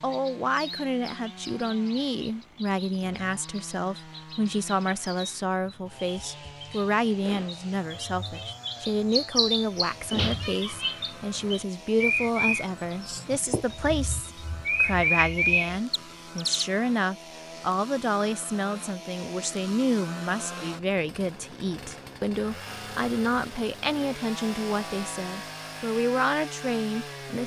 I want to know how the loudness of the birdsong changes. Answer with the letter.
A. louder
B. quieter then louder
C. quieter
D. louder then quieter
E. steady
A.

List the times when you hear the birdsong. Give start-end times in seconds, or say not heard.
0.1-16.6.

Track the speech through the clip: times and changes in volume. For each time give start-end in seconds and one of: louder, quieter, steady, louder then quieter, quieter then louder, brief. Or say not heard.
0.0-27.4 steady.